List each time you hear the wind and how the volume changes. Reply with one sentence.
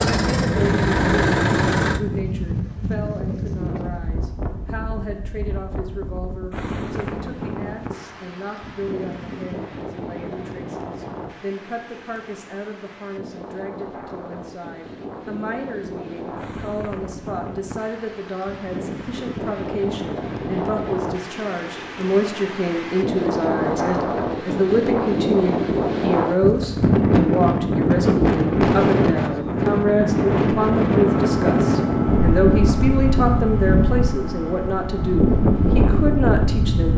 The wind can be heard from 0.0 to 36.9 s, getting quieter then louder.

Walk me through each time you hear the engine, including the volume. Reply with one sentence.
The engine can be heard briefly from 0.0 to 2.0 s; and from 31.0 to 36.9 s, getting quieter.